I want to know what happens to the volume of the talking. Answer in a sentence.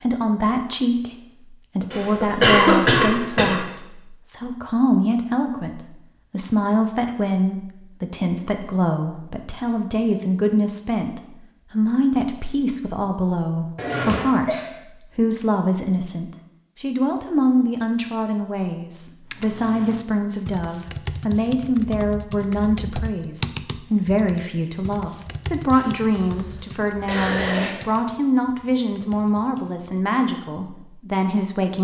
The volume of the talking stays about the same.